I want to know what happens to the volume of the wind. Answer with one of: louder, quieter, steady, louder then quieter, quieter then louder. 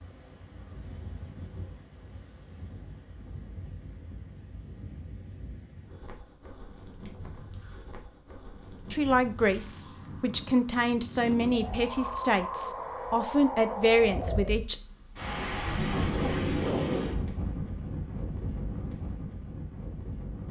louder.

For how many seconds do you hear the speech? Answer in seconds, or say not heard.
6 s.